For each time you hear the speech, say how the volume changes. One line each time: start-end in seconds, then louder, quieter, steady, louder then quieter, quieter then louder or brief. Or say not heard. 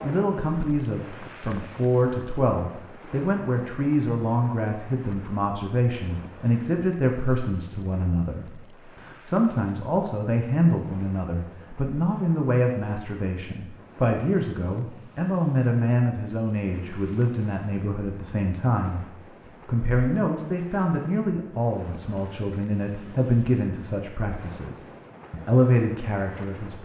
0.0-26.7 steady.